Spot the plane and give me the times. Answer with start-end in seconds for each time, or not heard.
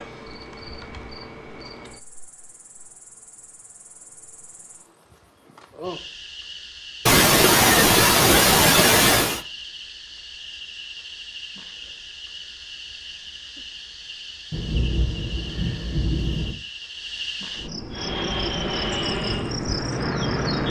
17.9-20.6.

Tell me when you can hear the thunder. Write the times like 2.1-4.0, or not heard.
14.5-16.6.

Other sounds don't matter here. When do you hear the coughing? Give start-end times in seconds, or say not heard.
7.0-9.4.